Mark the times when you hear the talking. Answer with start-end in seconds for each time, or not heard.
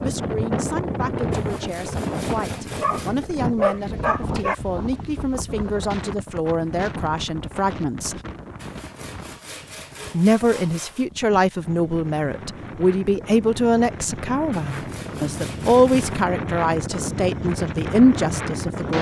0.0-8.2, 10.1-18.9.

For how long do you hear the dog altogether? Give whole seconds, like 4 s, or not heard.
2 s.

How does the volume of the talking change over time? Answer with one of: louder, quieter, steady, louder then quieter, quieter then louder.
louder.